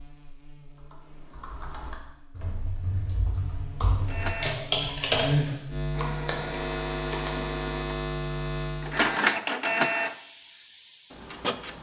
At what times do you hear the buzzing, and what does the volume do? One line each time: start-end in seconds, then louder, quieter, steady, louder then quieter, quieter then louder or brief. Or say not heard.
0.0-9.2 louder.